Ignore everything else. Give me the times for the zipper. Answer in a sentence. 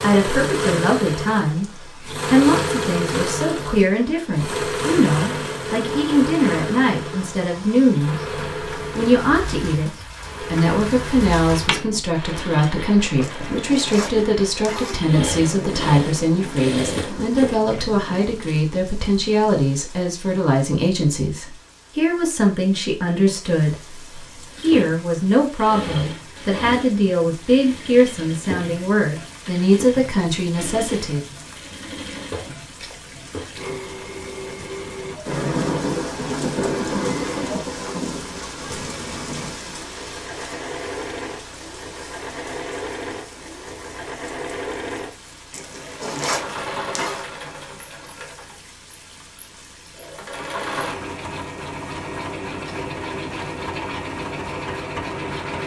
You can hear the zipper from 13.2 to 15.0 s and from 45.5 to 47.2 s.